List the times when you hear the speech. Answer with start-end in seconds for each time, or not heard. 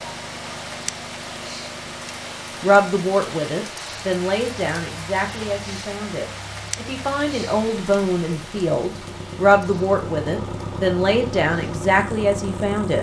2.6-12.9.